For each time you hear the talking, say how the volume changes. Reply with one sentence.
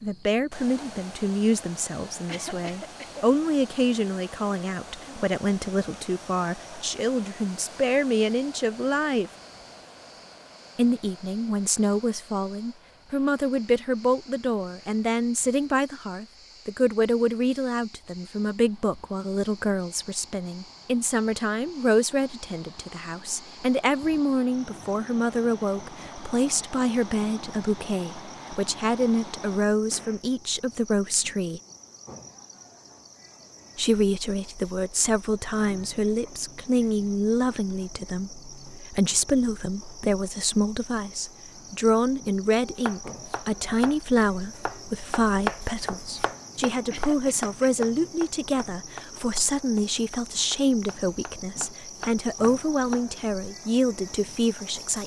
You can hear the talking from 0.0 to 9.3 s, at a steady volume; from 10.8 to 31.6 s, at a steady volume; and from 33.8 to 55.0 s, at a steady volume.